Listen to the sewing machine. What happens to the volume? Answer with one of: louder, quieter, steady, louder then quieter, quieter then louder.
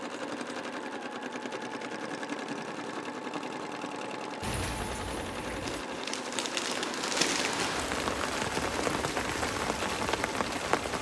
steady.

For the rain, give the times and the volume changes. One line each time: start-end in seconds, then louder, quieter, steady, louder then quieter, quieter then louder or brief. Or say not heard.
4.4-10.9 louder.